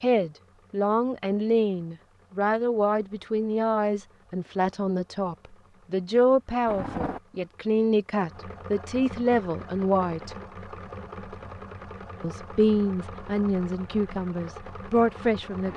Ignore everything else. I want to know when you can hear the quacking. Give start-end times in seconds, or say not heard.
not heard.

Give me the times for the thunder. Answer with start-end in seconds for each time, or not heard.
6.7-7.2.